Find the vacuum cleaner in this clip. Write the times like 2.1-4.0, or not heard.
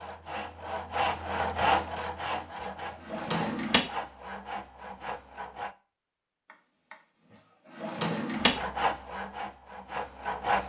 not heard.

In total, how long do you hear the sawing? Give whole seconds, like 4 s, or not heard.
8 s.